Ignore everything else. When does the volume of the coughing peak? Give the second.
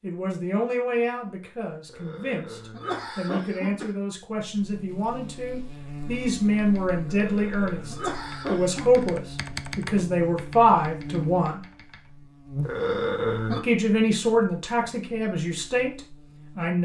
13 s.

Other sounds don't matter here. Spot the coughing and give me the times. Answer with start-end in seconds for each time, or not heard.
1.9-3.9, 7.0-9.1, 12.6-13.6.